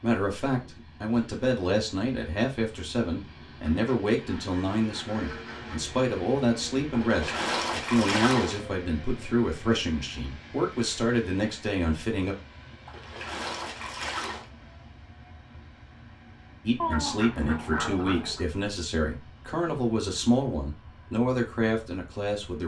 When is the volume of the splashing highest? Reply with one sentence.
The loudest moment of the splashing is at 8 seconds.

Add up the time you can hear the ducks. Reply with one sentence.
You can hear the ducks for 4 seconds altogether.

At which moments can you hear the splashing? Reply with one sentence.
You can hear the splashing from 6.9 to 8.6 s and from 12.8 to 14.4 s.